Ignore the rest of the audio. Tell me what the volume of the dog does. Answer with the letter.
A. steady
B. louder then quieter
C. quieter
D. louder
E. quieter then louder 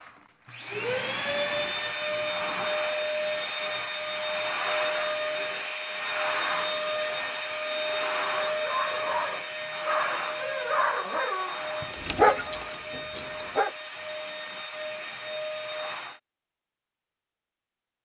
B.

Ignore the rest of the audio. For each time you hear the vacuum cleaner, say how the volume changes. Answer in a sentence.
You can hear the vacuum cleaner from 0.0 to 16.2 s, getting quieter.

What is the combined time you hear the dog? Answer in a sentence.
You can hear the dog for 5 seconds altogether.